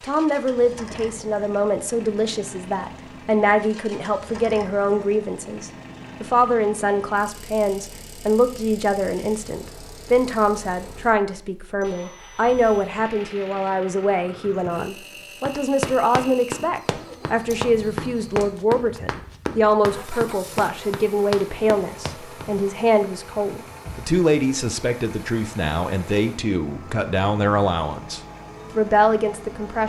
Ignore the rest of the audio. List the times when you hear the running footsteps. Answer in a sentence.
You can hear the running footsteps from 15.4 to 22.4 s.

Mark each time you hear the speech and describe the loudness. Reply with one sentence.
The speech can be heard from 0.0 to 29.8 s, at a steady volume.